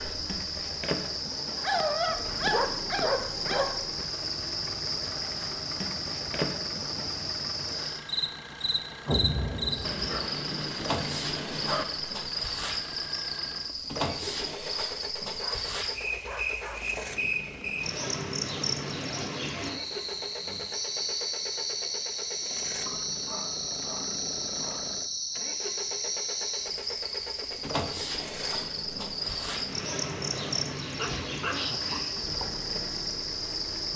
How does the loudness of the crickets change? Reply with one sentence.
The loudness of the crickets stays about the same.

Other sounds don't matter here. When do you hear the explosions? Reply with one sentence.
You can hear the explosions from 9.1 to 10.2 s.